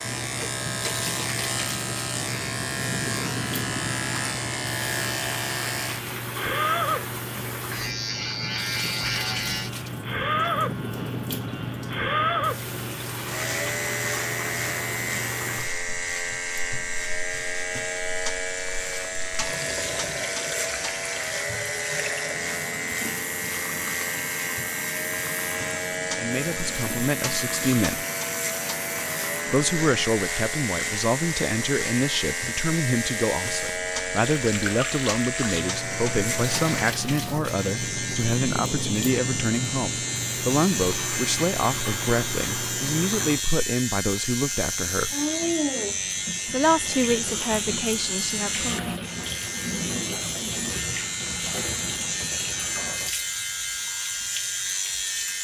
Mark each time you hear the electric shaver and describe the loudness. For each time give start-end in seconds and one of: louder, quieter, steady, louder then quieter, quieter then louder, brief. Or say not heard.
0.0-55.3 steady.